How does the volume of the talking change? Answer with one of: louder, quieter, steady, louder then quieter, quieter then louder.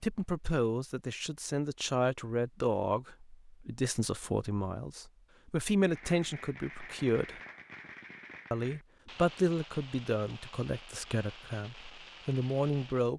steady.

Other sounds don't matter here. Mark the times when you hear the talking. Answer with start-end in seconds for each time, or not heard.
0.0-7.4, 8.5-13.1.